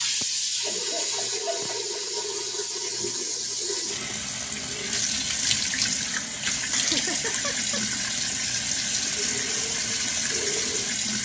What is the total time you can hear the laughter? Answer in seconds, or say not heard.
4 s.